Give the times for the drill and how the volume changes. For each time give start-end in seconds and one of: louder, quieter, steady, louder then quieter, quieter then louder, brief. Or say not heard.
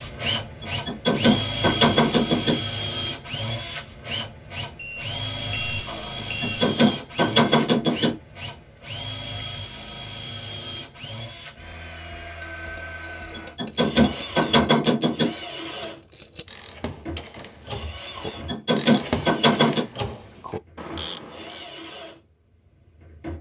0.0-23.3 quieter.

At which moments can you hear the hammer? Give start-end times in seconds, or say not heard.
0.6-2.6, 6.4-8.2, 13.3-15.3, 18.2-19.9.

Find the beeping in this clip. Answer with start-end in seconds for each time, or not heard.
4.8-6.6.